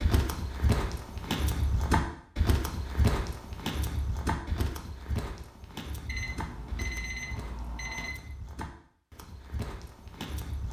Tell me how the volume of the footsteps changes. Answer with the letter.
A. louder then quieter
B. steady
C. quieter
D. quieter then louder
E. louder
C.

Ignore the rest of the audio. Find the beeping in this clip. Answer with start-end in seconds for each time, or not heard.
6.0-8.1.